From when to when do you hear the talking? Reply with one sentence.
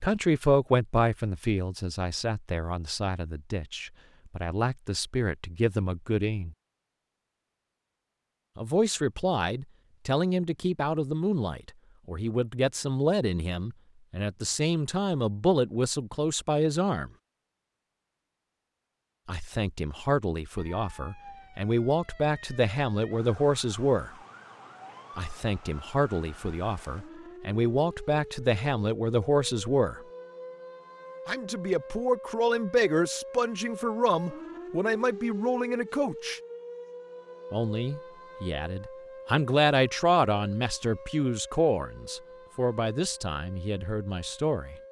The talking can be heard from 0.0 to 6.5 s, from 8.6 to 17.1 s, from 19.2 to 24.1 s, from 25.1 to 30.0 s, from 31.2 to 36.4 s and from 37.5 to 44.8 s.